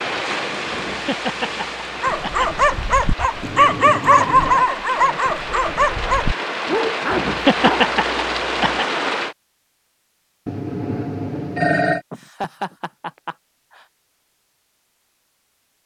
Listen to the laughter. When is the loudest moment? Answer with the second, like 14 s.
8 s.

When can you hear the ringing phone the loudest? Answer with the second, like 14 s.
12 s.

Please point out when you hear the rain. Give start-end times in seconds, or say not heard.
0.0-9.3.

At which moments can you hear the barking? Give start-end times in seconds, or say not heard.
2.0-7.8.